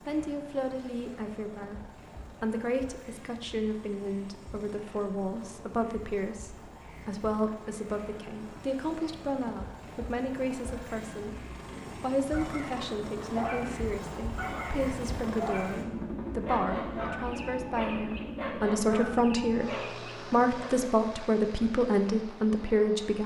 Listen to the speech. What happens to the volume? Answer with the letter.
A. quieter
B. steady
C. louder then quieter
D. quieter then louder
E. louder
E.